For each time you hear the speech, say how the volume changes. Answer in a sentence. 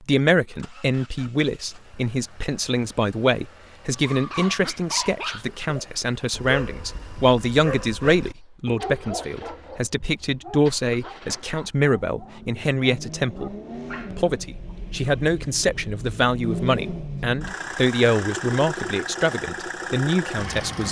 The speech can be heard from 0.1 to 20.8 s, at a steady volume.